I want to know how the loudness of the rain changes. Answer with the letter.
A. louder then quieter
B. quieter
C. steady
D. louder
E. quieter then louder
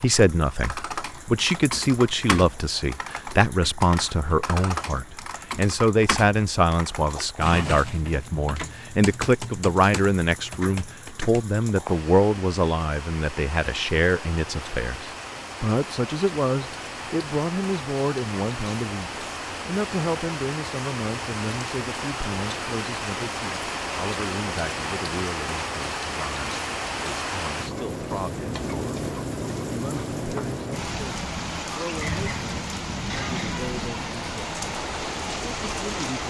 D.